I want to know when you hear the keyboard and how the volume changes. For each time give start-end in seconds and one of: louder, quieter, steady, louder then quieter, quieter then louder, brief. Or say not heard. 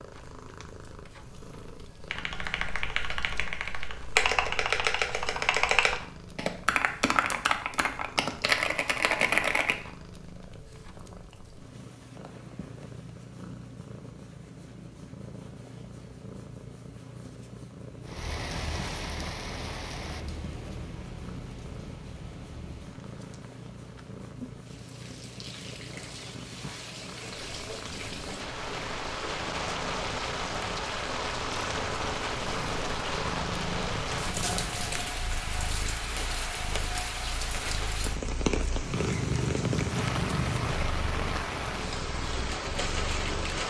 2.0-9.8 louder.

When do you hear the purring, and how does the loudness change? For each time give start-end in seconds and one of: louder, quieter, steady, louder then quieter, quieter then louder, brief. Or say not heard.
0.0-43.6 louder.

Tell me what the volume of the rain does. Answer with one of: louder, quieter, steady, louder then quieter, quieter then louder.
louder.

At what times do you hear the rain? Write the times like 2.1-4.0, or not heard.
18.1-43.6.